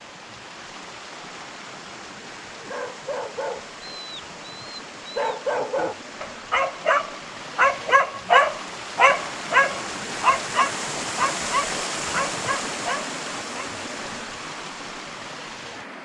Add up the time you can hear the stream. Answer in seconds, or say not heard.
16 s.